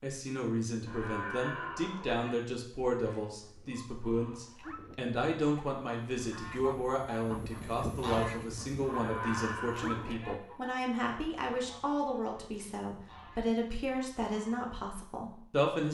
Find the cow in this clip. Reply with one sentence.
You can hear the cow from 0.8 to 2.4 s and from 8.8 to 10.3 s.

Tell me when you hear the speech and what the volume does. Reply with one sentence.
The speech can be heard from 0.0 to 15.8 s, at a steady volume.